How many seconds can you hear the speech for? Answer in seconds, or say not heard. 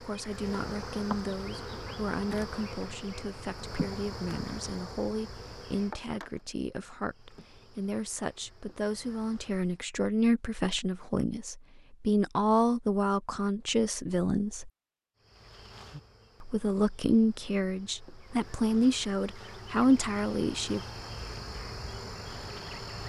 19 s.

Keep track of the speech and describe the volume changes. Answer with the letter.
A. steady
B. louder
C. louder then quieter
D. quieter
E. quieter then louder
B.